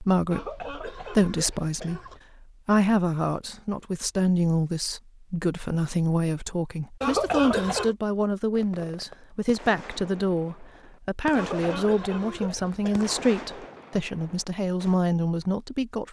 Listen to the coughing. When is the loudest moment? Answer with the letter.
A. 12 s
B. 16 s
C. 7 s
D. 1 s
C.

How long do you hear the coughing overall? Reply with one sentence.
You can hear the coughing for 5 seconds altogether.